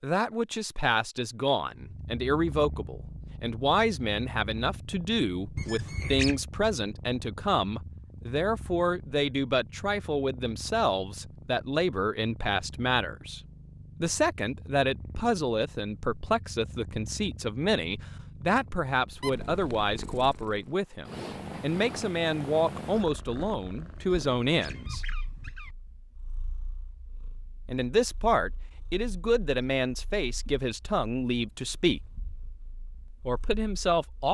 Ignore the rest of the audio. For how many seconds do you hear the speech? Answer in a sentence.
You can hear the speech for 30 seconds altogether.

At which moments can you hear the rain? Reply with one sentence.
You can't hear the rain here.